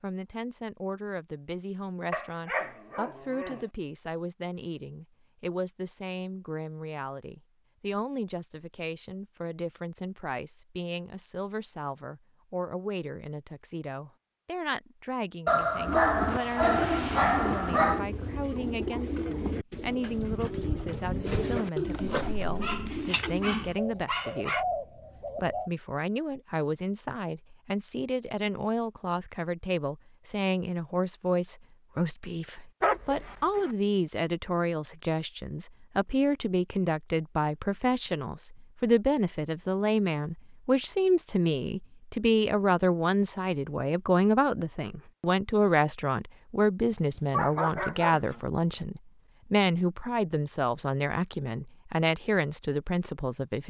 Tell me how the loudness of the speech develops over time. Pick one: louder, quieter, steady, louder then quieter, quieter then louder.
louder.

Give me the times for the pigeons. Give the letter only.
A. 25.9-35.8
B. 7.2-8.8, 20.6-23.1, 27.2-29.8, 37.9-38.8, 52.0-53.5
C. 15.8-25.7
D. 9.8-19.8
C.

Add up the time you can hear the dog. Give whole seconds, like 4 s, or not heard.
9 s.